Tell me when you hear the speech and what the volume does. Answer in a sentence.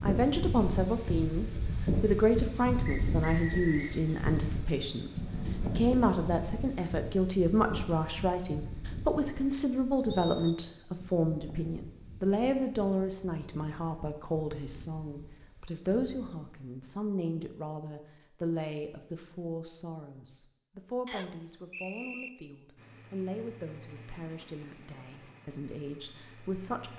You can hear the speech from 0.0 to 26.9 s, getting quieter.